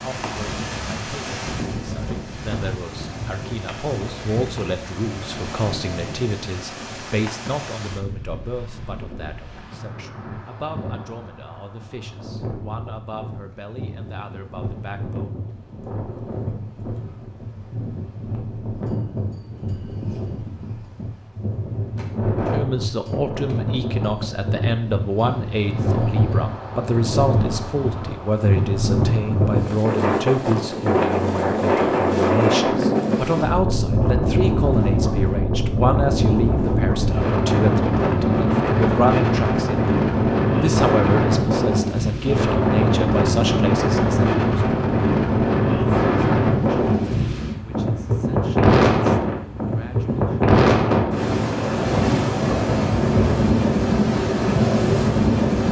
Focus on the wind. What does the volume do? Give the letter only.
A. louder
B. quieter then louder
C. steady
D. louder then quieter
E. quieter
A.